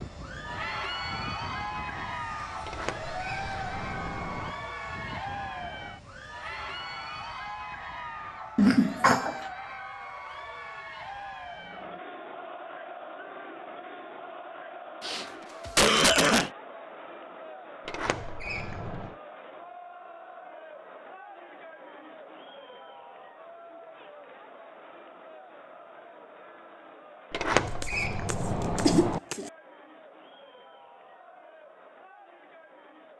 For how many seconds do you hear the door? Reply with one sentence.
You can hear the door for 5 seconds altogether.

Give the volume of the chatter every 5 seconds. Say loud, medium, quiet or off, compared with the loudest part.
loud, loud, medium, medium, medium, quiet, quiet.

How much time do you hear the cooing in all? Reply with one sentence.
You can't hear the cooing here.